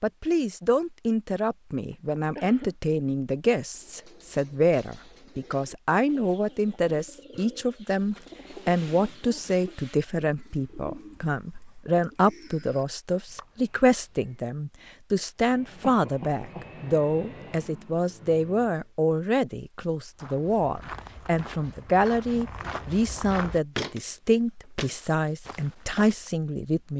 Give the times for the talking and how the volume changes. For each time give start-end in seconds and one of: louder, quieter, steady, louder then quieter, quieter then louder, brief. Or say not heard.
0.0-26.9 steady.